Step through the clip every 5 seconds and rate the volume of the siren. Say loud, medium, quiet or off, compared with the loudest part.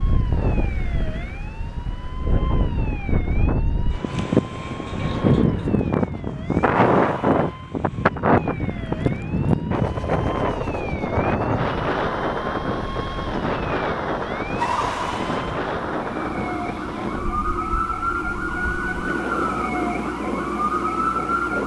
quiet, quiet, medium, loud, loud.